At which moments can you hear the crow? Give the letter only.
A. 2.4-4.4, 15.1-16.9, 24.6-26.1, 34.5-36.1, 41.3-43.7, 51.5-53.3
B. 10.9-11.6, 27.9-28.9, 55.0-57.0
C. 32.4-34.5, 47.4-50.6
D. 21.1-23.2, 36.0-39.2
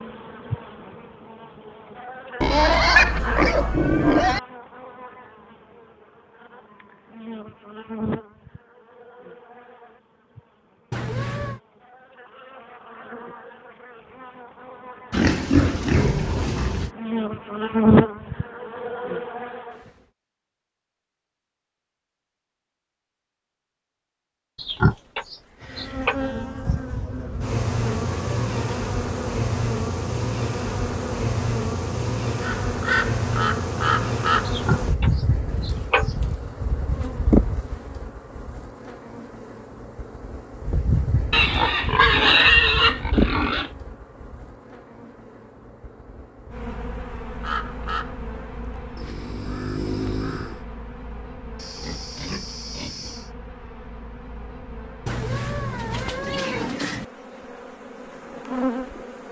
C.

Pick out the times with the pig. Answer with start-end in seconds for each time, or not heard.
2.4-4.4, 15.1-16.9, 24.6-26.1, 34.5-36.1, 41.3-43.7, 51.5-53.3.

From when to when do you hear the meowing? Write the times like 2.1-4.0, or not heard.
10.9-11.6, 27.9-28.9, 55.0-57.0.